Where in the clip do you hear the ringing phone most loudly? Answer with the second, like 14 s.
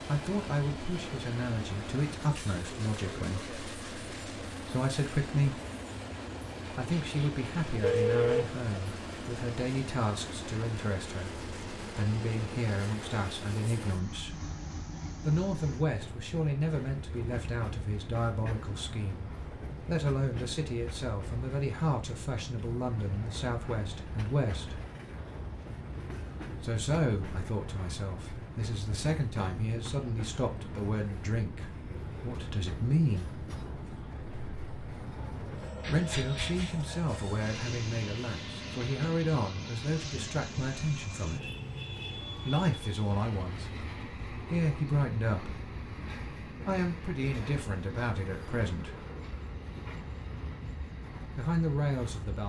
8 s.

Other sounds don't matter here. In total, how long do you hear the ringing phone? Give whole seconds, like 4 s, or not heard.
3 s.